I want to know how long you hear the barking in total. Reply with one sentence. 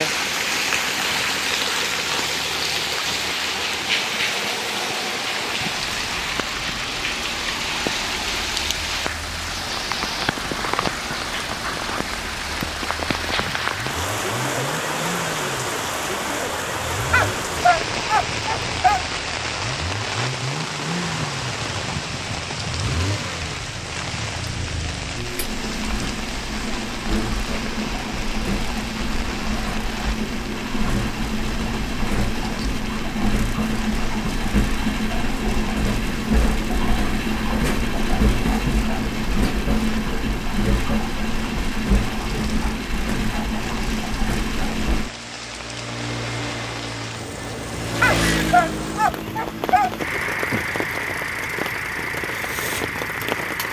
You can hear the barking for 4 seconds altogether.